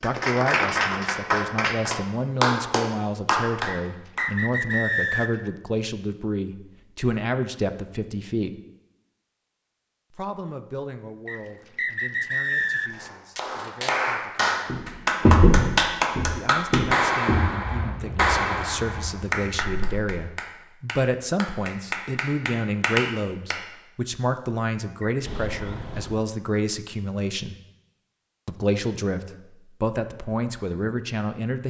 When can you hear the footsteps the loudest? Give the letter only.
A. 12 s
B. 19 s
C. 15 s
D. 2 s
C.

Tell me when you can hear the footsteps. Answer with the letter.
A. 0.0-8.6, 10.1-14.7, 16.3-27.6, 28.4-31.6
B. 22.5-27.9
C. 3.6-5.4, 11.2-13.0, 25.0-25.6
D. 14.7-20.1
D.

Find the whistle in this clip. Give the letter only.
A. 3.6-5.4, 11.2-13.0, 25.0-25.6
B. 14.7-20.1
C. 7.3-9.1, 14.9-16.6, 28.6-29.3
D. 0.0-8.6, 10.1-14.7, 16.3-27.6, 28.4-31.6
A.